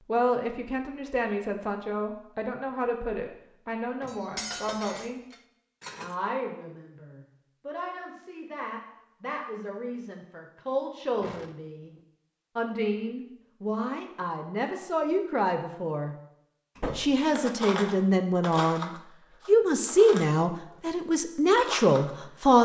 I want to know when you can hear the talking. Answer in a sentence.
You can hear the talking from 0.1 to 5.2 s, from 6.0 to 11.9 s, from 12.6 to 16.1 s and from 16.9 to 22.6 s.